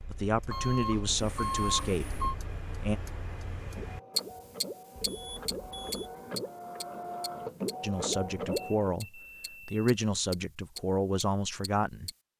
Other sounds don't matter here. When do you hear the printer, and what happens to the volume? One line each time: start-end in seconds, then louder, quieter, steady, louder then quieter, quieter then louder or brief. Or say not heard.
3.5-8.9 louder.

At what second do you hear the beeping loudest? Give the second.
2 s.